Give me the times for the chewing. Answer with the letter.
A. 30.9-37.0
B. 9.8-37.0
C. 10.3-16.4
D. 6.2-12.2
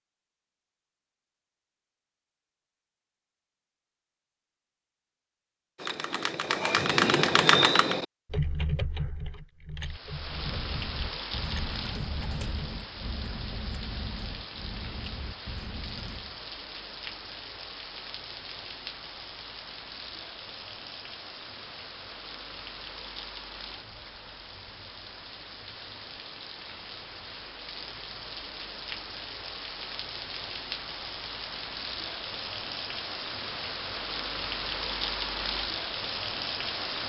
C.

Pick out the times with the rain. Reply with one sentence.
You can hear the rain from 9.8 to 37.0 s.